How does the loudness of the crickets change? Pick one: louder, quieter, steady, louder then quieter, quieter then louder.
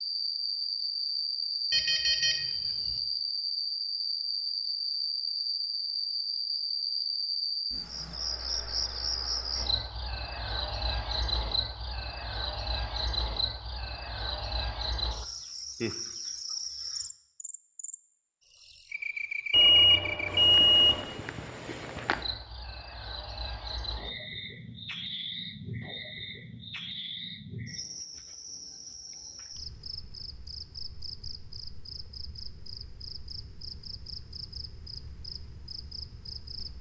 quieter.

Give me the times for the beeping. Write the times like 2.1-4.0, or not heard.
1.7-3.0, 19.5-21.1.